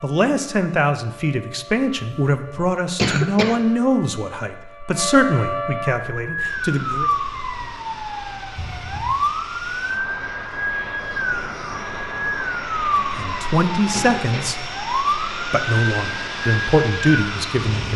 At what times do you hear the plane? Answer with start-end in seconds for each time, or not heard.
6.5-17.9.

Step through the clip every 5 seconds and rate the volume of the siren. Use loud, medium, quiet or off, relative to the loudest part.
quiet, loud, loud, loud.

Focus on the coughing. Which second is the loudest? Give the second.
3 s.